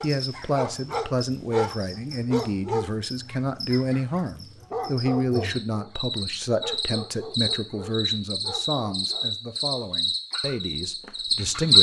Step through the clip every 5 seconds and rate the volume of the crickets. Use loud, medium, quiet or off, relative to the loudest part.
quiet, medium, loud.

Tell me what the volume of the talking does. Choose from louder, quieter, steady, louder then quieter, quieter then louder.
quieter.